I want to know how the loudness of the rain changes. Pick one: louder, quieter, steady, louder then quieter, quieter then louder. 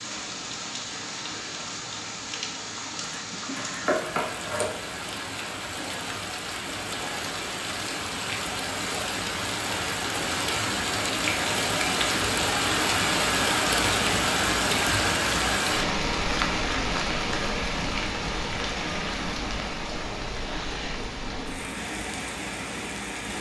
louder then quieter.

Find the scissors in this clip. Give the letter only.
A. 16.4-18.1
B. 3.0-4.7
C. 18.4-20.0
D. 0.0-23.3
B.